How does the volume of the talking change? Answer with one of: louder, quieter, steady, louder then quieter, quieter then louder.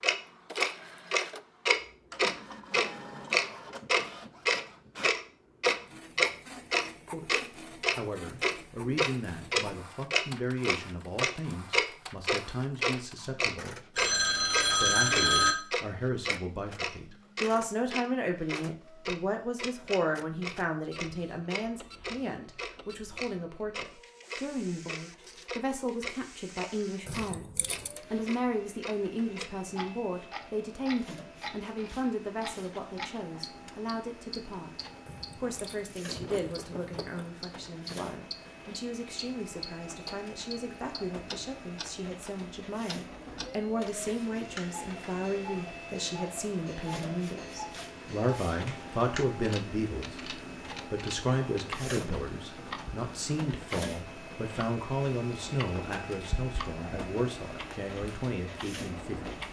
steady.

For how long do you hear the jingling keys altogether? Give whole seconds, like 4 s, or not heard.
3 s.